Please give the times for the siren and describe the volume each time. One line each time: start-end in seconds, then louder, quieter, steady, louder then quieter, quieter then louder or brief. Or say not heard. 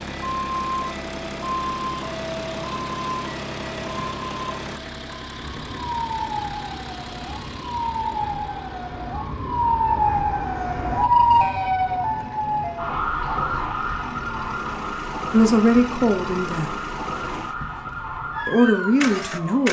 0.1-19.6 louder then quieter.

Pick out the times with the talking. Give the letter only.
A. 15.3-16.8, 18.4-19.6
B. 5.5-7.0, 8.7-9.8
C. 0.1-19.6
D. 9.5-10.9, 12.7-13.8
A.